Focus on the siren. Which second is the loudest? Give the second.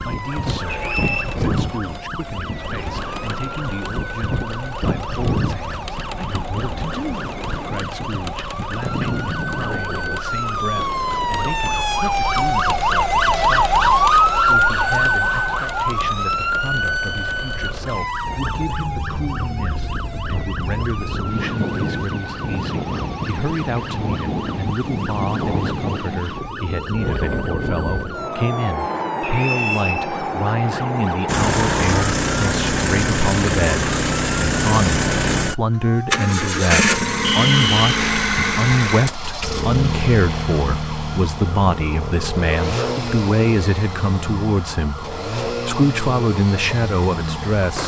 14 s.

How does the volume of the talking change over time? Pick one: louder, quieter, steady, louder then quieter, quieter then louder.
louder.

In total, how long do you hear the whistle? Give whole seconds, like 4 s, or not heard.
2 s.